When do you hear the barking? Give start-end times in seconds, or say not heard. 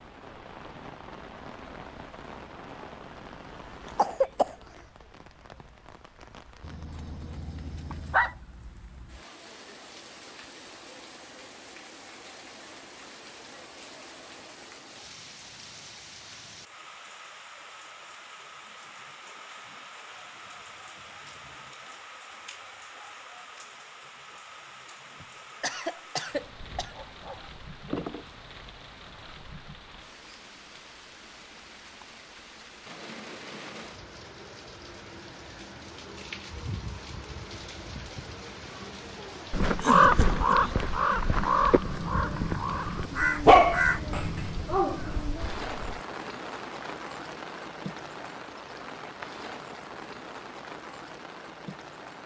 6.6-8.3, 26.6-28.2, 43.5-45.0.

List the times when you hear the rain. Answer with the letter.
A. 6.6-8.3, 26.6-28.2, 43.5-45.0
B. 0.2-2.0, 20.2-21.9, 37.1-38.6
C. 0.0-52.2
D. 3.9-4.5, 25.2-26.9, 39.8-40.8
C.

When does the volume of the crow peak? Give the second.
40 s.